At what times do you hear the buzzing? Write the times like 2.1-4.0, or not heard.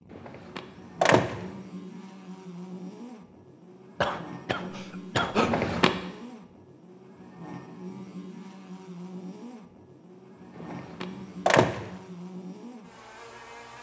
0.0-13.7.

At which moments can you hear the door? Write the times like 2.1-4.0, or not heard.
0.1-1.4, 5.3-6.0, 10.6-11.9.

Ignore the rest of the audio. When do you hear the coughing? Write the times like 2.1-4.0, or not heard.
4.0-5.5.